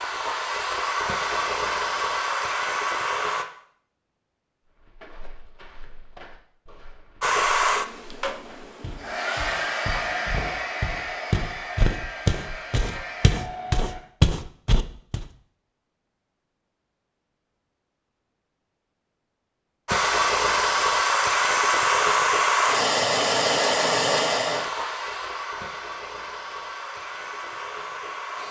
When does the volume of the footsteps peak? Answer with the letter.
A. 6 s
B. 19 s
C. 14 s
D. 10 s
C.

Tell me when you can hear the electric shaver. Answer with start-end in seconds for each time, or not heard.
not heard.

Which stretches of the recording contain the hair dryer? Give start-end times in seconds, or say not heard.
0.0-3.5, 7.2-14.0, 19.9-28.4.